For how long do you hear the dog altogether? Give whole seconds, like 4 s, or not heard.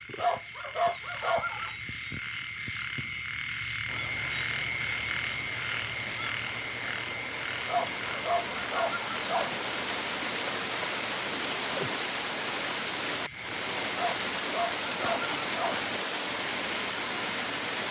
5 s.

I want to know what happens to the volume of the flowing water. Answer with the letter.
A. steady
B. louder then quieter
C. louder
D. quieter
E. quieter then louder
C.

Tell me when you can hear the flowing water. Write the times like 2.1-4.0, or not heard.
3.9-17.8.